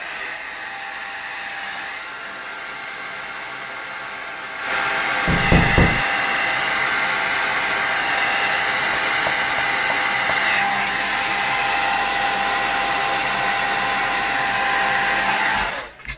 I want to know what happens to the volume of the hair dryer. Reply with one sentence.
The loudness of the hair dryer goes up.